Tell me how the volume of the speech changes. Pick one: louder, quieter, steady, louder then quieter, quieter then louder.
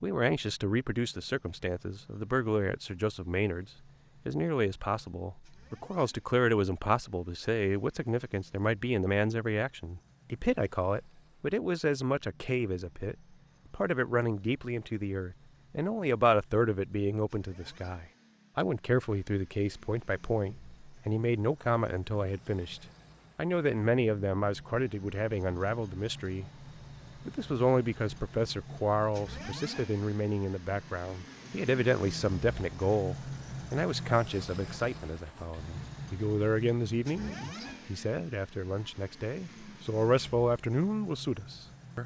steady.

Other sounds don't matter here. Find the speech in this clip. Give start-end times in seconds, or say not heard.
0.0-3.6, 4.2-26.6, 27.2-42.0.